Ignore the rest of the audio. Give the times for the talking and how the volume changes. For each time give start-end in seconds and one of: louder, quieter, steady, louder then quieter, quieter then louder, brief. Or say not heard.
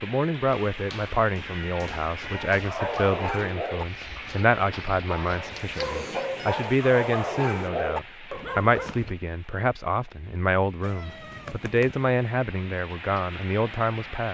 0.0-14.2 steady.